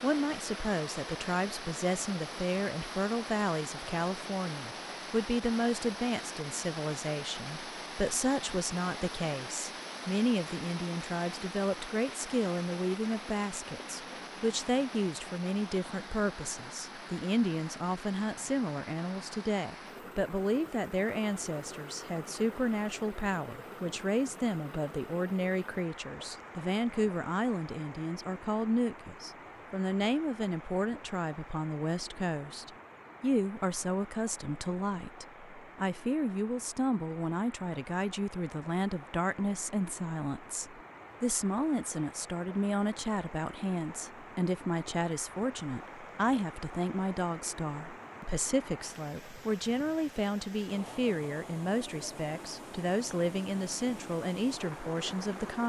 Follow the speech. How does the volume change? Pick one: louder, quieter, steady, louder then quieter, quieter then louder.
steady.